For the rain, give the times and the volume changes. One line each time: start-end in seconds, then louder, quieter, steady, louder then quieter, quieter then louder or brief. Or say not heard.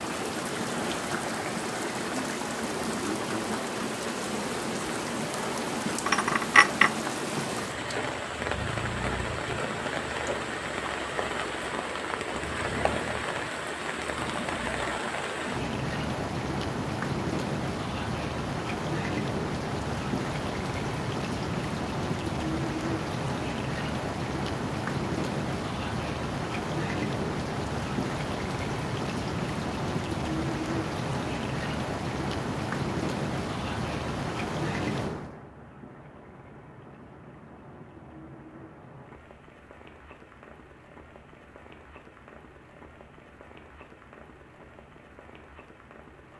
0.0-46.3 quieter.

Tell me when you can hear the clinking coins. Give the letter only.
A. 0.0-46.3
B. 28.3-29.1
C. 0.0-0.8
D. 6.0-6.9
D.